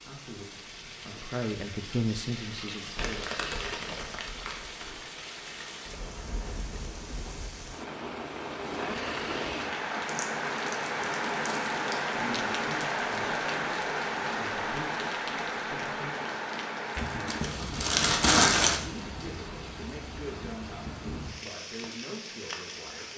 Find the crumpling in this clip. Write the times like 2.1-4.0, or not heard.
3.0-5.0, 10.1-12.1, 16.9-18.8.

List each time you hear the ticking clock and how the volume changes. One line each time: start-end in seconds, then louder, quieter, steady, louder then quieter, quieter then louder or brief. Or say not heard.
not heard.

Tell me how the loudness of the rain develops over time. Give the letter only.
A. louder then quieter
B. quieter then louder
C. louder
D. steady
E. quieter
A.